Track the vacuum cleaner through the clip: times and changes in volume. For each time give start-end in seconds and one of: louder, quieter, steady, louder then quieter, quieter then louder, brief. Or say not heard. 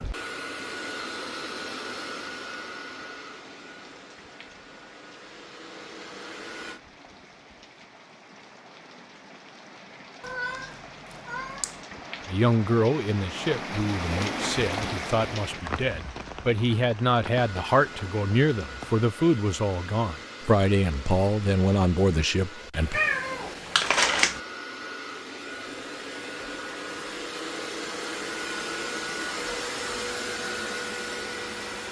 0.0-6.8 quieter then louder
17.3-31.8 louder.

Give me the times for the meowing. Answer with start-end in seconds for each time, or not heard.
10.2-11.8, 22.9-24.4.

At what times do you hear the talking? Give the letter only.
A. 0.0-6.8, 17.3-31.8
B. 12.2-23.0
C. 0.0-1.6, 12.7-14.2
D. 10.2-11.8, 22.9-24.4
B.